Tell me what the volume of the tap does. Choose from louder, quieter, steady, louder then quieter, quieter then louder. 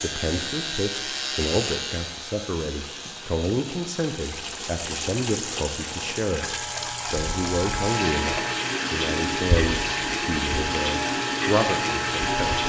louder.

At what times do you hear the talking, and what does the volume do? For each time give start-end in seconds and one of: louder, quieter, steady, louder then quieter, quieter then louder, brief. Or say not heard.
0.0-12.6 steady.